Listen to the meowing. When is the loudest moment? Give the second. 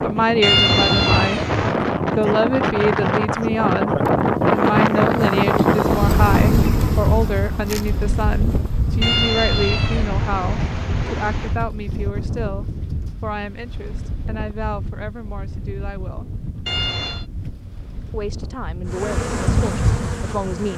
1 s.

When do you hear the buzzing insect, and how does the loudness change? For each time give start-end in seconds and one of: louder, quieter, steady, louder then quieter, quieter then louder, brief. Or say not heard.
4.1-9.2 louder then quieter
18.9-20.7 brief.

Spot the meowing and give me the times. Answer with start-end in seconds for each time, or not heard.
0.4-1.8, 9.0-11.6, 16.6-17.2.